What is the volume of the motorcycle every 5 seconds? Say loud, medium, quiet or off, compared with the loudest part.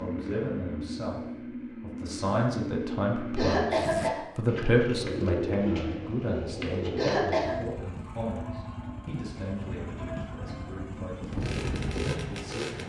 loud, medium, loud.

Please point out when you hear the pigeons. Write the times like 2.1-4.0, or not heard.
4.5-7.3.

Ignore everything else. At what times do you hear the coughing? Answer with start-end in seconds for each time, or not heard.
3.4-4.2, 7.0-7.5.